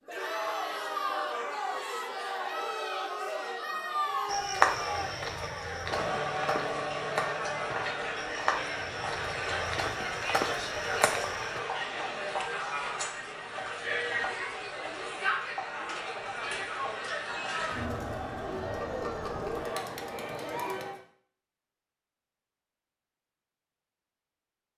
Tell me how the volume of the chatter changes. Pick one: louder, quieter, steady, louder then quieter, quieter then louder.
steady.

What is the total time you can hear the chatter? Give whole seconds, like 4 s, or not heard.
21 s.